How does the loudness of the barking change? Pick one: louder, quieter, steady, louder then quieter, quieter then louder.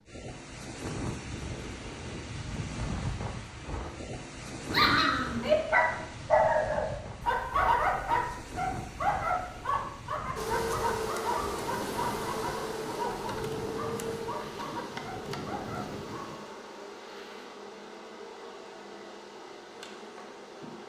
quieter.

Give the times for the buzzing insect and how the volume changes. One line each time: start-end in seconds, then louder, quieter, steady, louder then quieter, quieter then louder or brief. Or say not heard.
10.3-20.8 quieter.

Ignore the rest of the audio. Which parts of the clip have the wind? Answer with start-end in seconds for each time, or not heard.
0.0-16.4.